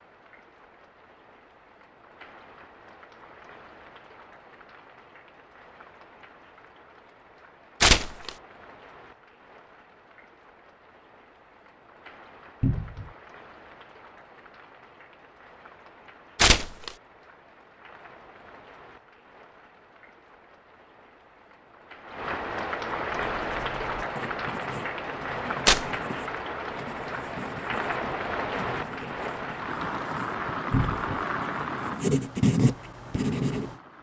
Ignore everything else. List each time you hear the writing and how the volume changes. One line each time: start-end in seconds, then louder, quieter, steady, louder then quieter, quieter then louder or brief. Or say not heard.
23.1-33.8 louder.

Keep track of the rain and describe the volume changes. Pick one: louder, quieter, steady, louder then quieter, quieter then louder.
louder.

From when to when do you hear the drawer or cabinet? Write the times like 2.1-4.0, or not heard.
12.6-13.1, 30.7-31.1.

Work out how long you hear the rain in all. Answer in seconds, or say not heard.
34 s.